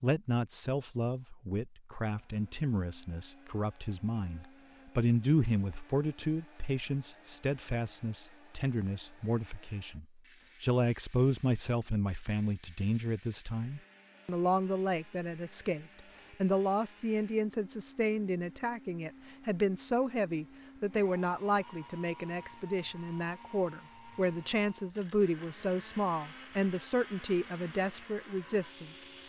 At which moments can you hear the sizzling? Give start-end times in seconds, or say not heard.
not heard.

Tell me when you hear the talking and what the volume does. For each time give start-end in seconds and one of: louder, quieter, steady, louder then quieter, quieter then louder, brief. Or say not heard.
0.0-29.2 steady.